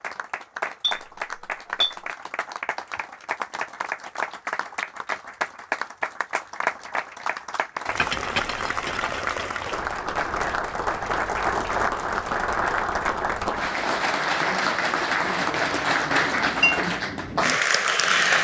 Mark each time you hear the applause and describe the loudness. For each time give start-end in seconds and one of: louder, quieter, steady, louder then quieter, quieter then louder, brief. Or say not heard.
0.0-18.3 louder.